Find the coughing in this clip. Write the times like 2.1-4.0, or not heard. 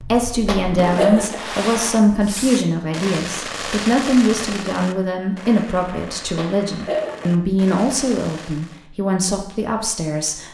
0.5-1.4, 6.3-7.2.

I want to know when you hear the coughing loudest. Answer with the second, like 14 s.
1 s.